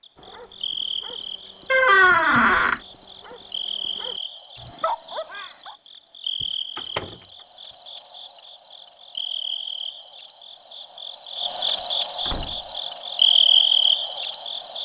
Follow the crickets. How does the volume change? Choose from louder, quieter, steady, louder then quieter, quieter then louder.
louder.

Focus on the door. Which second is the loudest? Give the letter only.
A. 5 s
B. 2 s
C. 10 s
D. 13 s
B.